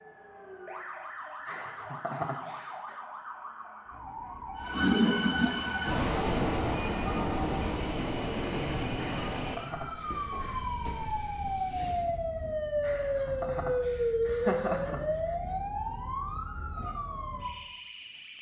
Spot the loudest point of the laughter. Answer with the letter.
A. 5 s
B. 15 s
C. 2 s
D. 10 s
B.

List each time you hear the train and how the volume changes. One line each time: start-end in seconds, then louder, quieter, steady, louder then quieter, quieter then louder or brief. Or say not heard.
4.5-12.2 quieter.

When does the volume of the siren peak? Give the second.
14 s.